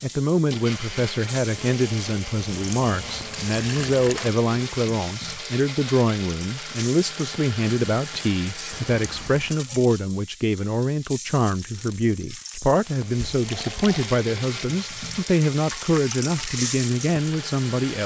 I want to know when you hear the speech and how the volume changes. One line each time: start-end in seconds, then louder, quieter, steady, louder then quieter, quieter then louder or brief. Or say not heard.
0.0-18.0 steady.